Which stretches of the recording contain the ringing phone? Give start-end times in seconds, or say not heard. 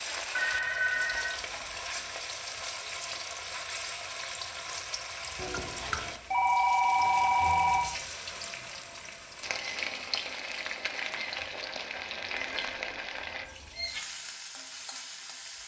0.3-2.0, 5.3-8.0, 12.5-13.7.